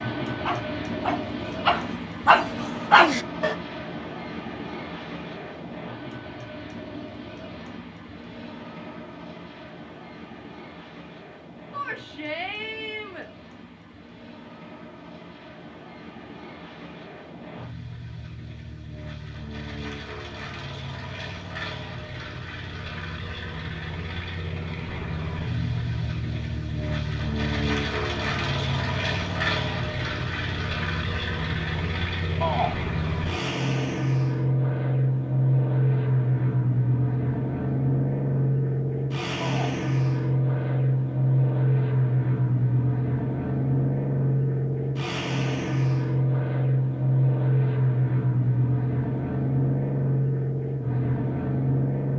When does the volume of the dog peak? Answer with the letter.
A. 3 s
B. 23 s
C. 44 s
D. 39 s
A.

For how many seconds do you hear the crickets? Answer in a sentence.
The crickets can't be heard in this clip.